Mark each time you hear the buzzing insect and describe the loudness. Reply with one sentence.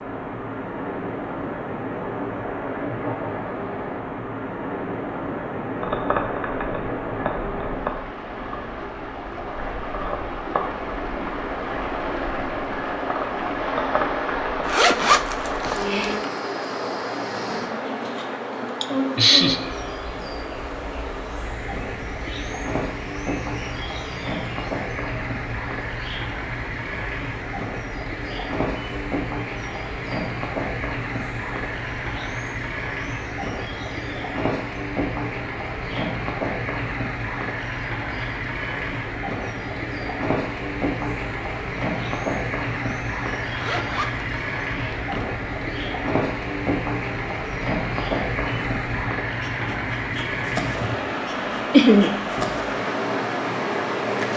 The buzzing insect can be heard from 5.8 to 54.3 s, getting quieter then louder.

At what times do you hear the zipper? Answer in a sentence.
The zipper can be heard from 14.7 to 16.2 s and from 43.5 to 45.2 s.